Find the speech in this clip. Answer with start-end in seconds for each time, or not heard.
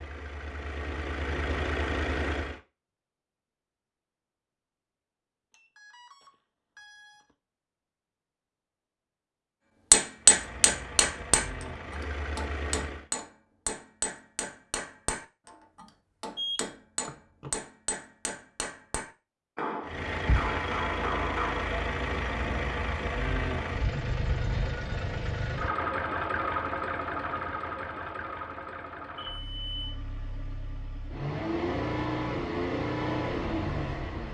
not heard.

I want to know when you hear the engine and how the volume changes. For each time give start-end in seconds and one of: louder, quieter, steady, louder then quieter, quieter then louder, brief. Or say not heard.
0.0-2.6 brief
10.2-13.1 brief
19.8-34.2 quieter then louder.